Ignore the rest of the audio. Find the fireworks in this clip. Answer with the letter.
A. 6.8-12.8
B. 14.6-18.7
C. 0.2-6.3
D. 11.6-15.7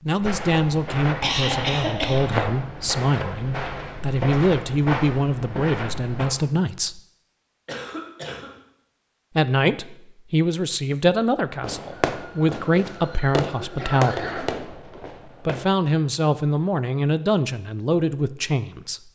D.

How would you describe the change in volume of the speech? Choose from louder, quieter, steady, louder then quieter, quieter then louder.
steady.